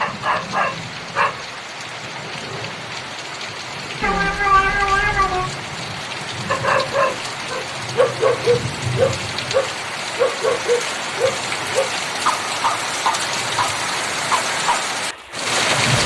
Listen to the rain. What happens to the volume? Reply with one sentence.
The loudness of the rain goes up.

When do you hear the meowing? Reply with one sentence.
The meowing can be heard from 4.0 to 5.5 s.